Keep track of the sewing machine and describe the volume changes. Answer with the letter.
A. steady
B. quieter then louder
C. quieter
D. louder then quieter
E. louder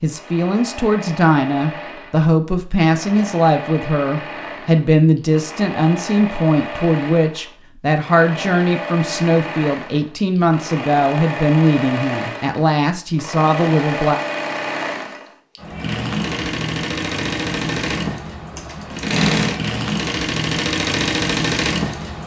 E.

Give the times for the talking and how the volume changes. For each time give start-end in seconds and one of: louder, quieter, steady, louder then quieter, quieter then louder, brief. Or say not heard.
0.0-14.2 steady.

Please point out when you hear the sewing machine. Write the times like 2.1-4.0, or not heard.
0.0-22.2.